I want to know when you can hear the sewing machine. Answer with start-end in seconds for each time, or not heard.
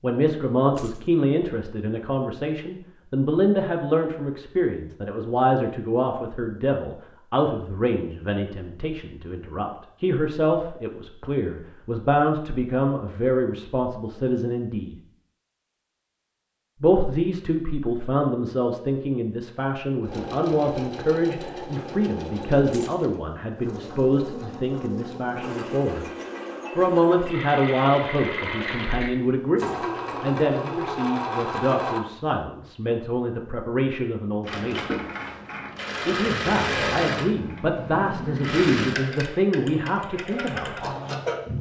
20.0-32.4, 34.5-41.5.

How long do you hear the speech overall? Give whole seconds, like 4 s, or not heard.
37 s.